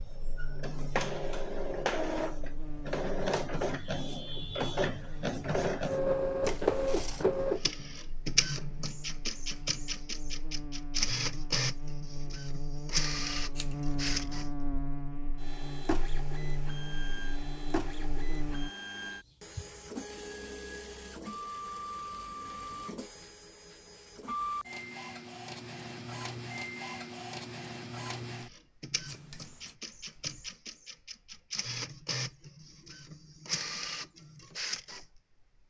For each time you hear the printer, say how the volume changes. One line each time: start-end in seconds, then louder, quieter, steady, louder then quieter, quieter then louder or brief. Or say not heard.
0.0-35.6 quieter.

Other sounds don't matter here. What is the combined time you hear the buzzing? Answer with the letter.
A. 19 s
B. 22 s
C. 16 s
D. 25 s
A.